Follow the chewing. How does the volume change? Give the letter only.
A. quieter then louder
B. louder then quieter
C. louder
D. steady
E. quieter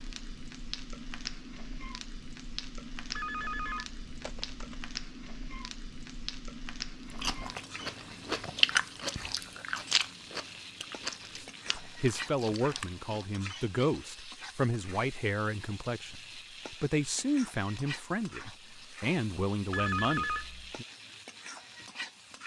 E.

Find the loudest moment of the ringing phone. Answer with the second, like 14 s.
20 s.